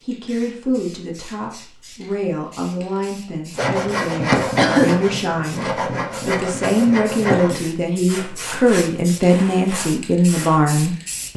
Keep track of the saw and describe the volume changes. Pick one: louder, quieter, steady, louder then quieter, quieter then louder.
quieter.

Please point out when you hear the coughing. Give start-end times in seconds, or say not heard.
4.5-5.0.